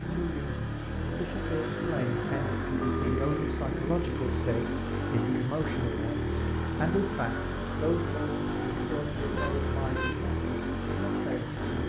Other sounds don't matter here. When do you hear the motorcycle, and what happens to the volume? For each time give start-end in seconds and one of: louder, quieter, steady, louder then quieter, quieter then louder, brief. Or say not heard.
0.0-11.8 steady.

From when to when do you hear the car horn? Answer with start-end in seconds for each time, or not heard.
2.8-3.5, 9.3-10.2.